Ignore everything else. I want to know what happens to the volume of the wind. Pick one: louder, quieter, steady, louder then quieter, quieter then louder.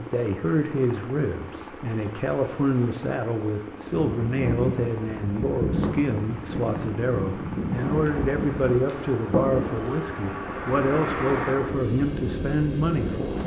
steady.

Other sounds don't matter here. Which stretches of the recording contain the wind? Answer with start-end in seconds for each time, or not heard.
3.9-13.4.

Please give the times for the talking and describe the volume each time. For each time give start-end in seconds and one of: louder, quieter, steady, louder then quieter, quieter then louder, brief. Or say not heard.
0.0-13.4 steady.